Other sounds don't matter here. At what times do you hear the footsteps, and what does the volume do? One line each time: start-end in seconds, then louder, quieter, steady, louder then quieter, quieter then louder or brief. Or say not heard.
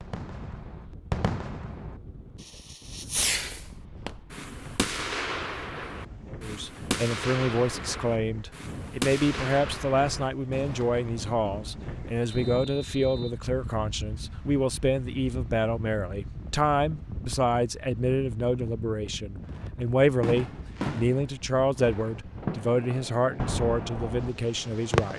not heard.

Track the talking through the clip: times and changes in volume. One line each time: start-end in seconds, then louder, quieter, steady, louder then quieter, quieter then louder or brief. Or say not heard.
6.3-25.1 steady.